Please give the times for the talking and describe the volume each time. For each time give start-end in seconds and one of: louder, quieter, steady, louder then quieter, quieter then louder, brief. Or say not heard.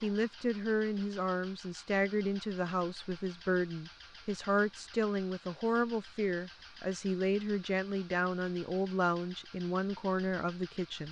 0.0-11.0 steady.